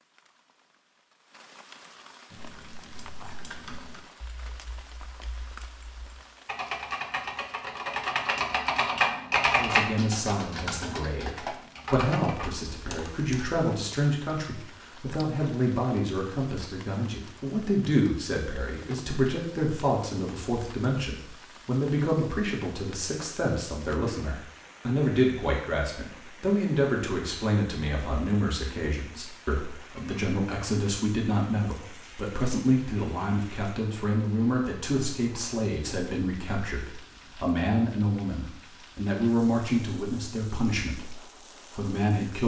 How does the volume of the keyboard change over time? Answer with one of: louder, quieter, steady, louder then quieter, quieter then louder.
louder then quieter.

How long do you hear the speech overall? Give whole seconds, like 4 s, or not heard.
33 s.